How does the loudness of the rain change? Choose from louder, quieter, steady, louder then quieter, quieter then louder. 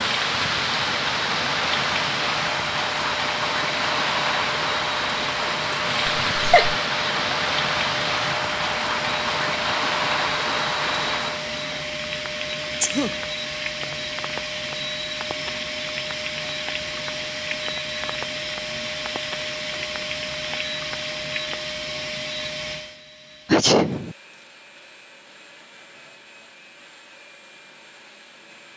quieter.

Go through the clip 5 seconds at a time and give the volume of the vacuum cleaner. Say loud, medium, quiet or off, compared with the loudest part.
loud, loud, loud, loud, loud, quiet.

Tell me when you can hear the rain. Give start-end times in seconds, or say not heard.
0.0-21.6.